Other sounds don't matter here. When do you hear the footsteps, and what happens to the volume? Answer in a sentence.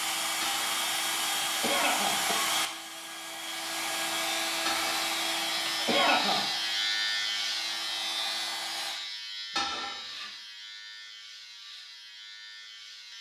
The footsteps can't be heard in this clip.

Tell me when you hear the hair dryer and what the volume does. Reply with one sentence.
The hair dryer can be heard from 0.0 to 9.0 s, getting quieter.